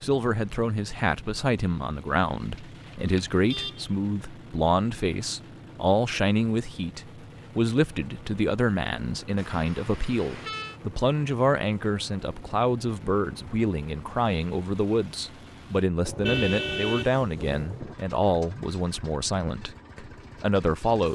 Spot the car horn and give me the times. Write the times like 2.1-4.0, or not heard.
2.5-3.9, 9.3-10.8, 16.1-17.9.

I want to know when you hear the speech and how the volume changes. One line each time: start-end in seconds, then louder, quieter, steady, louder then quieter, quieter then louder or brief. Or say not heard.
0.0-21.1 steady.